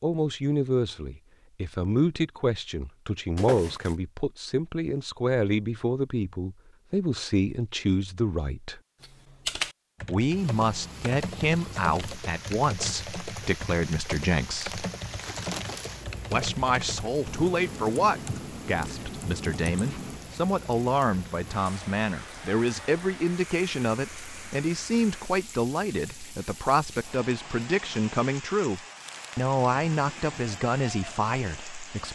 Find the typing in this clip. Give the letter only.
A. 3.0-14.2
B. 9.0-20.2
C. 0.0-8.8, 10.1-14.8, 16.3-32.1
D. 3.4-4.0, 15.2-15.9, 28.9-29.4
B.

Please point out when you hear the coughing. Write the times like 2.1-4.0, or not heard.
not heard.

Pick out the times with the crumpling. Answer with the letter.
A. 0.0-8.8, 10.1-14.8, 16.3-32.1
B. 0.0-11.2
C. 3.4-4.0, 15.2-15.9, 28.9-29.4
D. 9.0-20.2
C.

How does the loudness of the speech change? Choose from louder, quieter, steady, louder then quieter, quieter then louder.
steady.